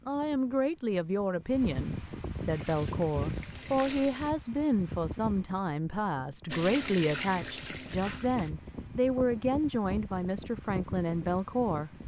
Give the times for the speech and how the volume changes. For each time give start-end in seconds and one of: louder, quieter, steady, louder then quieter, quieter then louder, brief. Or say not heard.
0.1-11.9 steady.